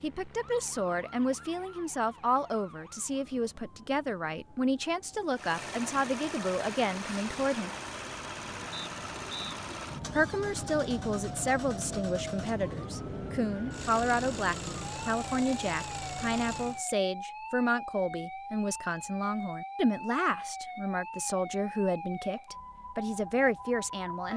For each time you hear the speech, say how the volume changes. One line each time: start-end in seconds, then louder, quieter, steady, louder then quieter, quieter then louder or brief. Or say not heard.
0.0-7.7 steady
10.2-24.3 steady.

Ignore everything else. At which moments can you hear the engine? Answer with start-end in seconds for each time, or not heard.
5.3-16.9.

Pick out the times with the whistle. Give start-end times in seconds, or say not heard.
8.7-9.6.